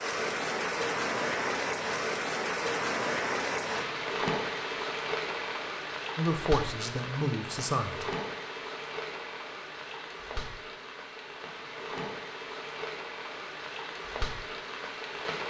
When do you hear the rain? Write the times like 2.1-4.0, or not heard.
0.0-15.4.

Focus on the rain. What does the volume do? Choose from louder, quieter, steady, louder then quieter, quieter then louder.
quieter.